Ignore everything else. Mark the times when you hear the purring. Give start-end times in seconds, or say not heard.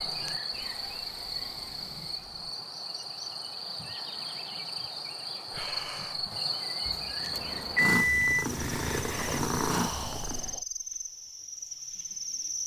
7.2-10.6.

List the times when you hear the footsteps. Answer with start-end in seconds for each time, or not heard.
not heard.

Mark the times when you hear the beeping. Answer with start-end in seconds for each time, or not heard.
6.8-8.4.